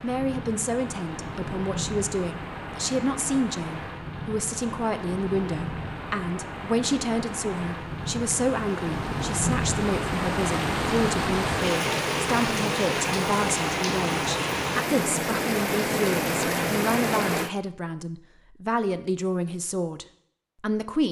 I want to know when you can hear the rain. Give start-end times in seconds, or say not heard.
0.0-17.5.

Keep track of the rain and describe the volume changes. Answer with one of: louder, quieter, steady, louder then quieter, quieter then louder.
louder.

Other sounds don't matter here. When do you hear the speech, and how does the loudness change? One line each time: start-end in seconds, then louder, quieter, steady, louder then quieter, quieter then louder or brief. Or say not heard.
0.0-21.0 steady.